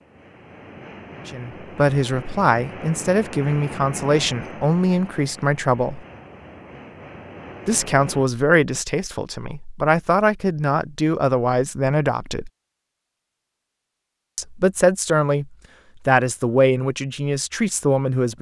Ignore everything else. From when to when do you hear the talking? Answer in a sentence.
You can hear the talking from 1.2 to 6.0 s, from 7.7 to 12.5 s and from 14.3 to 18.3 s.